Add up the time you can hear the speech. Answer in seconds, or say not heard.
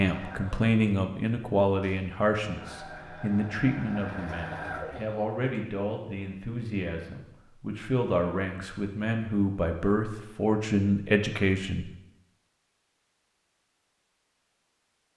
12 s.